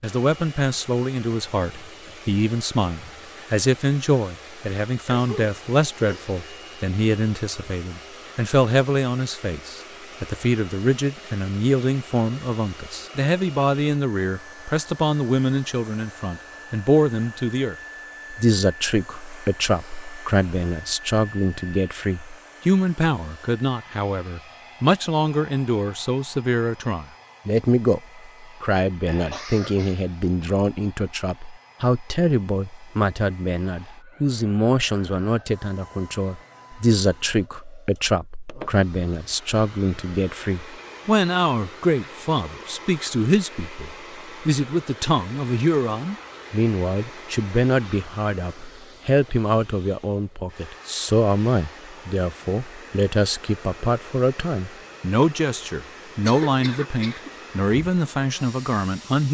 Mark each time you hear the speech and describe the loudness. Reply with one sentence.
The speech can be heard from 0.0 to 59.2 s, at a steady volume.